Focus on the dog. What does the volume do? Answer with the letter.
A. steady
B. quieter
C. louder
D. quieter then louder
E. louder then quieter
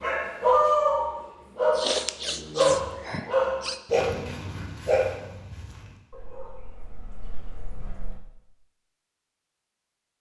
B.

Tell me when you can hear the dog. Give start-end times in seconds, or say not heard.
0.0-8.2.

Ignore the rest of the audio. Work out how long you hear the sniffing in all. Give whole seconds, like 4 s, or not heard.
2 s.